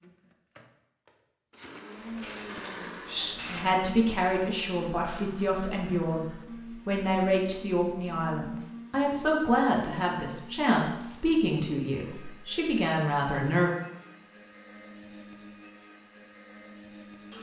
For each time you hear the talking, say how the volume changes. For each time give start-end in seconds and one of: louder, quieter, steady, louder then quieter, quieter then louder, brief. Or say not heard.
3.5-13.7 steady.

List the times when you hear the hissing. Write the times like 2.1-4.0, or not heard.
2.1-3.7.